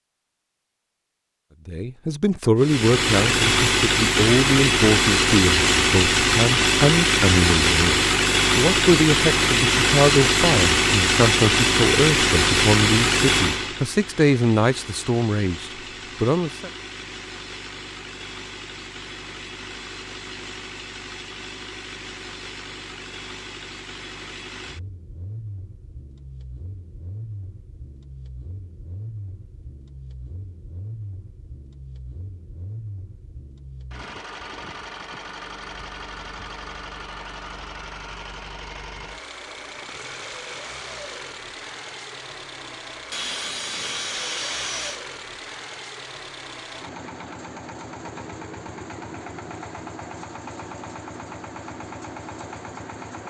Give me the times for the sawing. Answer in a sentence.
The sawing can be heard from 43.1 to 45.0 s.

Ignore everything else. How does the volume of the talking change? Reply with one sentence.
The loudness of the talking stays about the same.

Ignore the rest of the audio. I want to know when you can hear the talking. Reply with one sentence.
You can hear the talking from 1.6 to 16.7 s.